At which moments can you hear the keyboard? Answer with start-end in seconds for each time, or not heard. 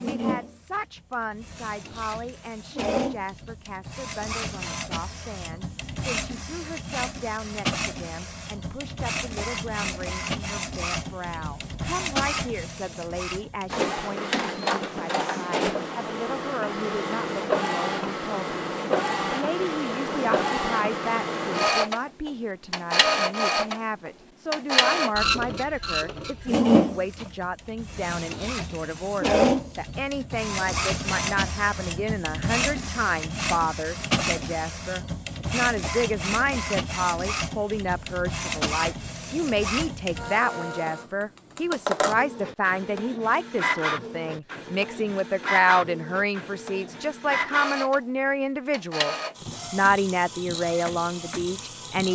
not heard.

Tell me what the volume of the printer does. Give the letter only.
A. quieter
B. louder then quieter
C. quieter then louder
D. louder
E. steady
B.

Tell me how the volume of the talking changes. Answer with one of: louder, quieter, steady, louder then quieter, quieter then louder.
louder.